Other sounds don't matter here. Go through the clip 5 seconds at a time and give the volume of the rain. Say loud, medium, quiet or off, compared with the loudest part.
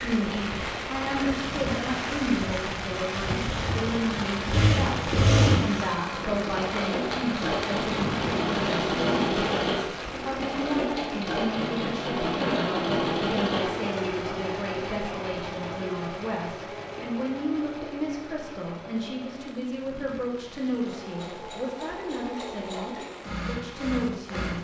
loud, loud, medium, quiet, quiet.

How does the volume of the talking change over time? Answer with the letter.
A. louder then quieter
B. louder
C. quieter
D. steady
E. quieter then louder
D.